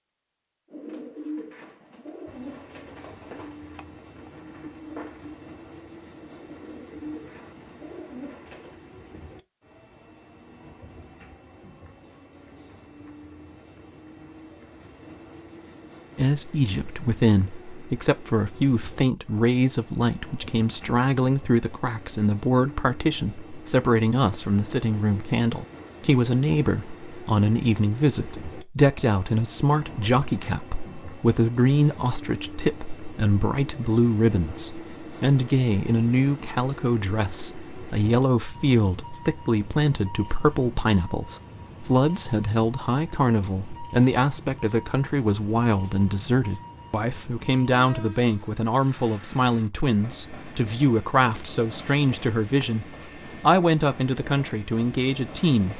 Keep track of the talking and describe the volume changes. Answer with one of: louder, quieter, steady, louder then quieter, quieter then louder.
steady.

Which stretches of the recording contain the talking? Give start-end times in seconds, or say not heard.
16.1-55.7.